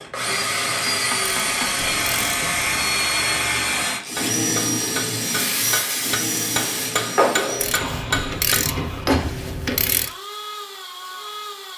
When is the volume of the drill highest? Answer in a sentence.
The volume of the drill peaks at 3 seconds.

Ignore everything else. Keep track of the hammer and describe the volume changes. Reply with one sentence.
The volume of the hammer goes up.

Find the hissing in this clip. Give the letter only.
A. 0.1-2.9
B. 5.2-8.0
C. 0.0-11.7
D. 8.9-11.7
B.